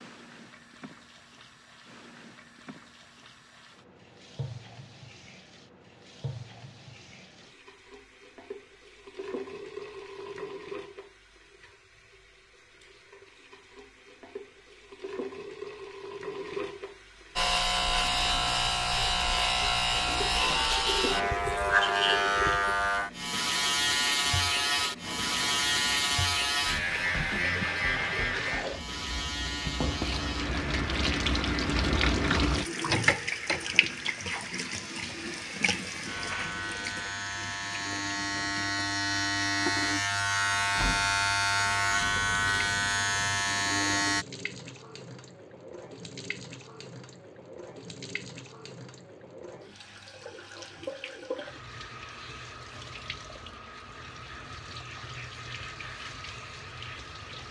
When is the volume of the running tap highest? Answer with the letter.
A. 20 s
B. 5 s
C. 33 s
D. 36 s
C.